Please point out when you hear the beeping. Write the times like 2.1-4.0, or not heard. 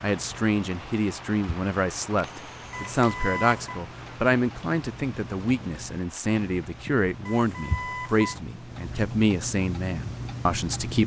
2.7-3.8, 7.2-8.3.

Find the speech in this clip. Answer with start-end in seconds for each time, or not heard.
0.0-11.0.